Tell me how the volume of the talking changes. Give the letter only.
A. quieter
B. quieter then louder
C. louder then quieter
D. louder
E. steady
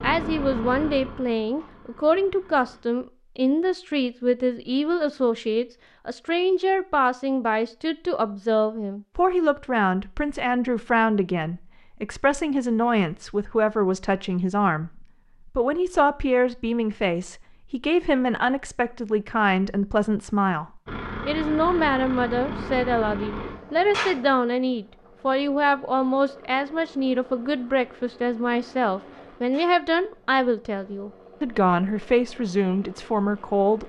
E.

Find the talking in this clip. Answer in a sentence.
You can hear the talking from 0.0 to 33.8 s.